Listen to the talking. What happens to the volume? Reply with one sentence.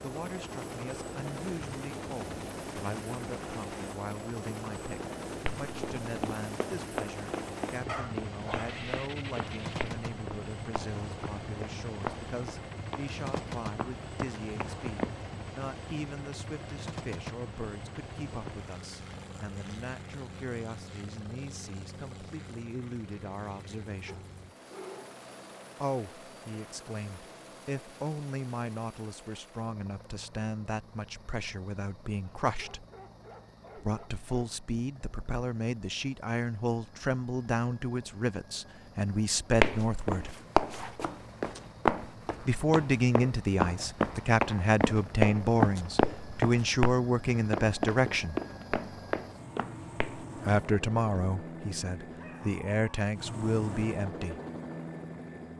The loudness of the talking goes up.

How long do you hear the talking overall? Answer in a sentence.
You can hear the talking for 48 seconds altogether.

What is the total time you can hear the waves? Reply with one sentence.
The waves can't be heard in this clip.